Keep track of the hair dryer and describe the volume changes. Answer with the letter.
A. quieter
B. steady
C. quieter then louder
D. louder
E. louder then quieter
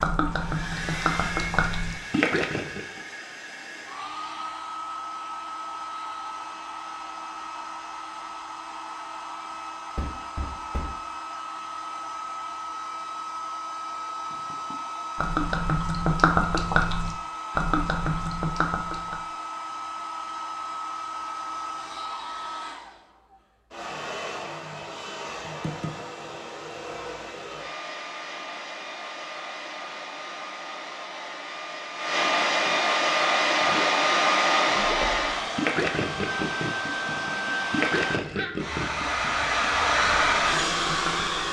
D.